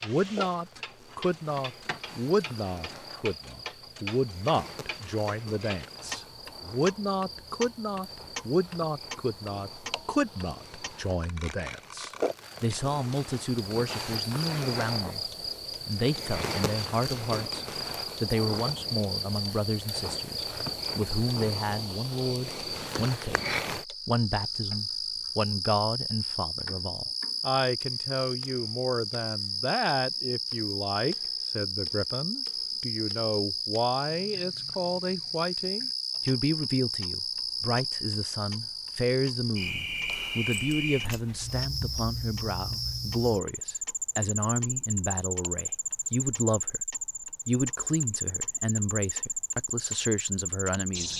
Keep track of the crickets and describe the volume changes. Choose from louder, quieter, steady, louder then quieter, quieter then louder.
louder.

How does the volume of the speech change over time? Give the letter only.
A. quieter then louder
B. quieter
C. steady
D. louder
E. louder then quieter
C.